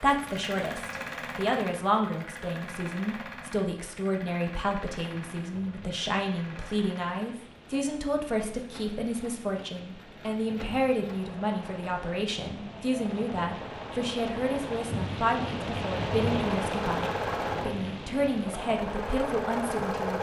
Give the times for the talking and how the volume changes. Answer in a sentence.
The talking can be heard from 0.0 to 20.1 s, at a steady volume.